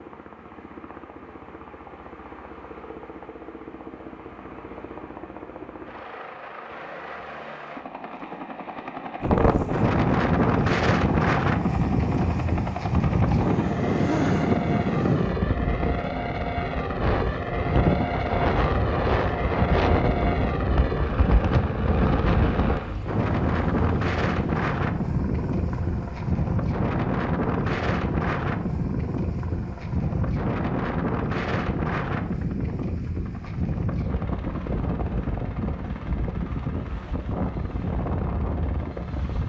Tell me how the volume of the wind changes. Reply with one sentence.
The loudness of the wind goes down.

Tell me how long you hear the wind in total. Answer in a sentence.
The wind can be heard for 30 seconds in total.